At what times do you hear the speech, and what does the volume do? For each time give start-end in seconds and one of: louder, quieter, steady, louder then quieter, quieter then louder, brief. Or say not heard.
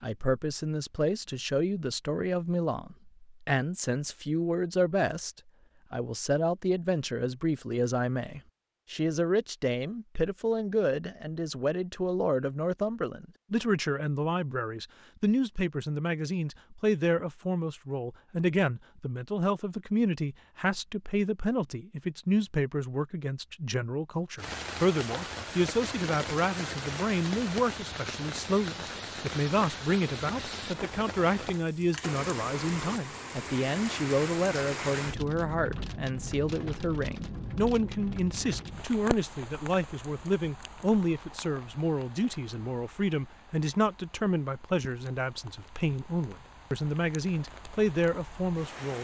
0.0-48.9 steady.